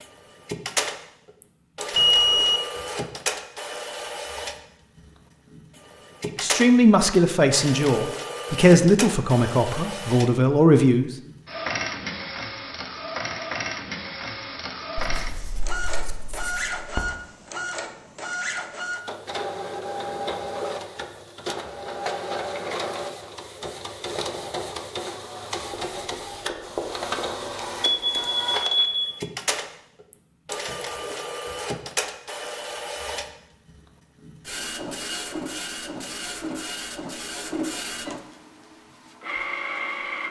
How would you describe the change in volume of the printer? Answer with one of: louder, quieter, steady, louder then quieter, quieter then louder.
steady.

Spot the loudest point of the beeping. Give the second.
2 s.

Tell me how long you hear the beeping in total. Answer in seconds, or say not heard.
2 s.